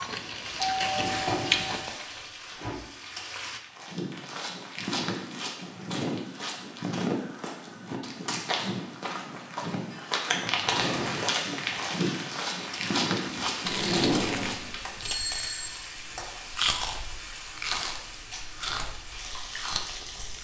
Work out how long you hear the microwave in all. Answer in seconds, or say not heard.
not heard.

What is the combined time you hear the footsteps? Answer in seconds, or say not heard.
11 s.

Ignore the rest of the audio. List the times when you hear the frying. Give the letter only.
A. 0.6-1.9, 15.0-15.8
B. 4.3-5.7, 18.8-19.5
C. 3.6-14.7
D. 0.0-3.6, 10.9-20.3
D.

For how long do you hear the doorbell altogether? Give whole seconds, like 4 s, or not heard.
2 s.